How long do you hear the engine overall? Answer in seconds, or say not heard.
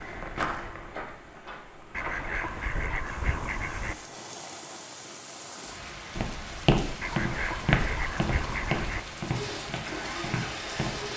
2 s.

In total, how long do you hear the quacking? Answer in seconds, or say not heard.
4 s.